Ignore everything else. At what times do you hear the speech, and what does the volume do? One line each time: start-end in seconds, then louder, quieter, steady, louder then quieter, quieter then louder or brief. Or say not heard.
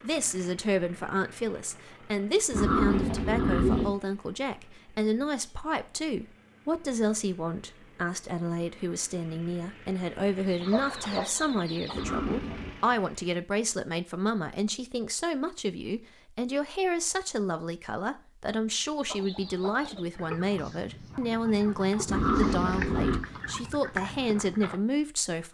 0.0-25.4 steady.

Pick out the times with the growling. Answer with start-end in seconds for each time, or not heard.
2.5-3.9, 11.9-12.7, 22.1-23.2.